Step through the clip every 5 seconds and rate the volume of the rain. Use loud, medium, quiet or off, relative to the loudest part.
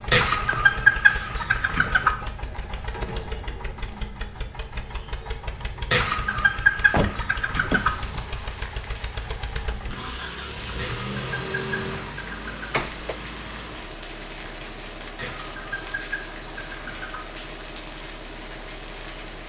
off, loud, loud, loud.